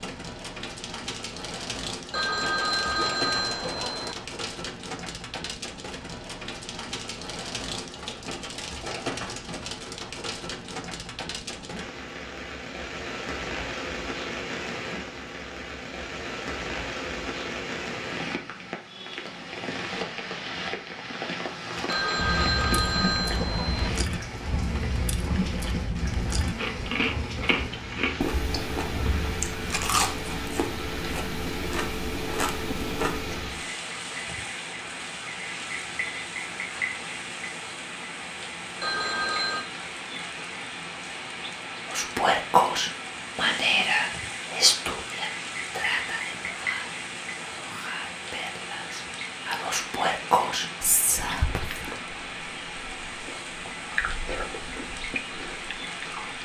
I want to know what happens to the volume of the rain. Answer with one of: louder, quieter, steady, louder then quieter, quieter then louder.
steady.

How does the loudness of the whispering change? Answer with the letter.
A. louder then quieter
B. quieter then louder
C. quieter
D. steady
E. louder
B.